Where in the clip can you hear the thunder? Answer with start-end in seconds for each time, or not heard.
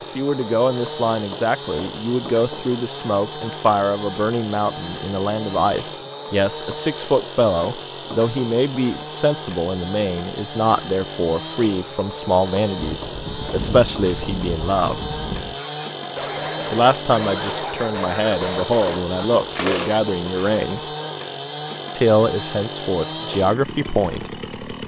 12.8-15.6.